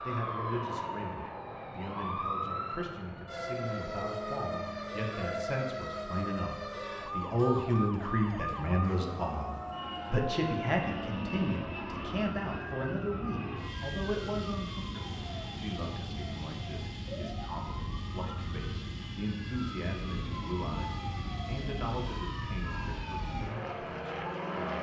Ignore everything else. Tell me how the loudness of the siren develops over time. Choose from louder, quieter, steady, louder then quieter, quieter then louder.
quieter.